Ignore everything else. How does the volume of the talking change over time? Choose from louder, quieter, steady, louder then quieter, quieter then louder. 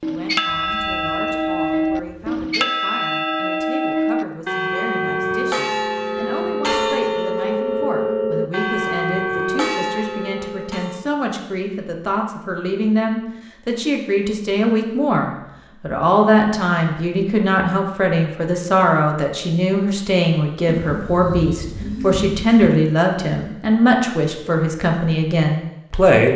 louder.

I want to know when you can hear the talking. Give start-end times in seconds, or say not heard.
0.0-26.3.